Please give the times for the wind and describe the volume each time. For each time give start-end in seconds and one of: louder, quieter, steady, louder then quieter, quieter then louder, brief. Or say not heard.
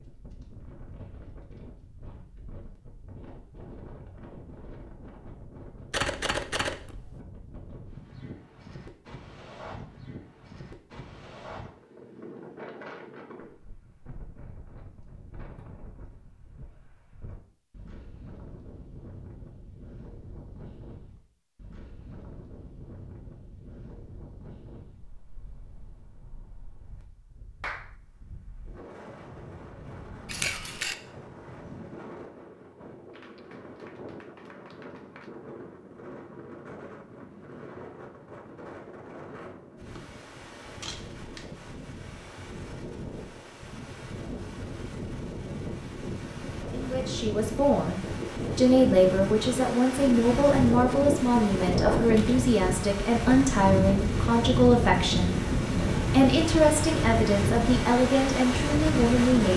0.0-59.5 louder.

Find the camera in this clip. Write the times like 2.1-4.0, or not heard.
5.9-7.2, 30.2-30.9, 39.9-41.5.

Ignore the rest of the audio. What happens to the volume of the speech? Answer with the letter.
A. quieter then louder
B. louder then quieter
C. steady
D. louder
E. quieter
C.